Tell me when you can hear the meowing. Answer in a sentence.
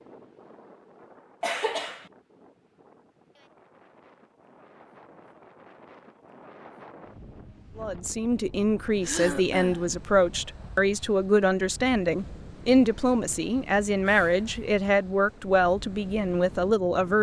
The meowing can't be heard in this clip.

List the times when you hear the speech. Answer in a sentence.
The speech can be heard from 7.8 to 17.1 s.